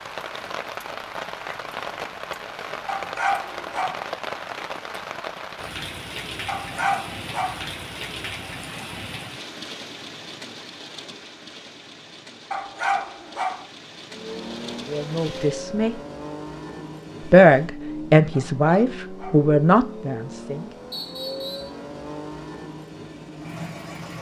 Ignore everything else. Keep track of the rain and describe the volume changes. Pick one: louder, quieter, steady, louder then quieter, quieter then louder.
quieter.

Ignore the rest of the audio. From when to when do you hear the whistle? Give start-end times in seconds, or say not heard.
20.9-21.8.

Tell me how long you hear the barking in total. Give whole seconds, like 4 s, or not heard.
5 s.